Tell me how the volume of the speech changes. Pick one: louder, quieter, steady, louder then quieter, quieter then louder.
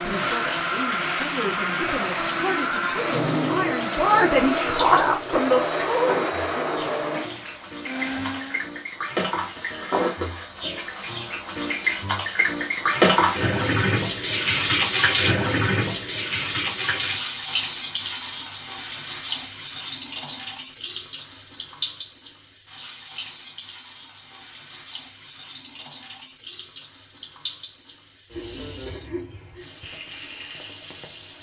louder.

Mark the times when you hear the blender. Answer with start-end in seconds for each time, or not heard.
0.0-8.7.